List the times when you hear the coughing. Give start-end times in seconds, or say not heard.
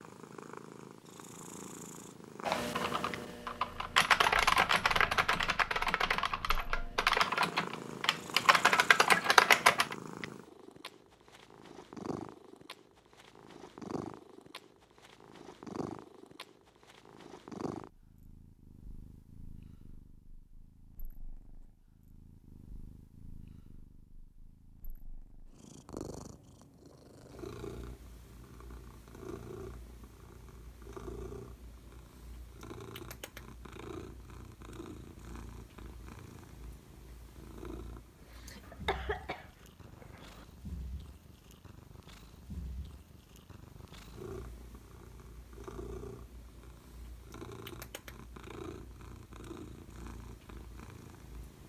9.2-9.8, 38.6-40.5.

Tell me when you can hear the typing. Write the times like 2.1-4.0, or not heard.
2.5-9.9.